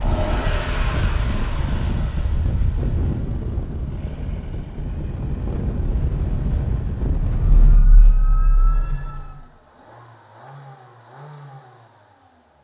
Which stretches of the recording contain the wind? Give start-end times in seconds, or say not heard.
0.0-7.8.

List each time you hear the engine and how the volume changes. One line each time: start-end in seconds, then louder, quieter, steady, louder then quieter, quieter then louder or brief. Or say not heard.
0.0-12.5 quieter then louder.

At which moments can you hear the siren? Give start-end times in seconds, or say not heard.
7.2-9.3.